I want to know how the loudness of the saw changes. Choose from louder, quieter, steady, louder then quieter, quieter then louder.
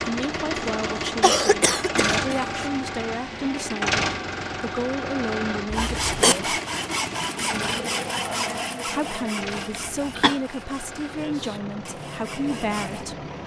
quieter.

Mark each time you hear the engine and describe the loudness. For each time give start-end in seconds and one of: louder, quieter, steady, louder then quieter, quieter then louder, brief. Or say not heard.
0.0-13.4 quieter.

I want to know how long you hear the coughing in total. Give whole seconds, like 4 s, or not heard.
3 s.